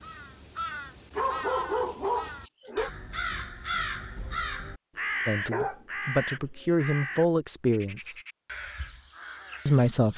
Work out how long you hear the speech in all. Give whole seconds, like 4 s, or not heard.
3 s.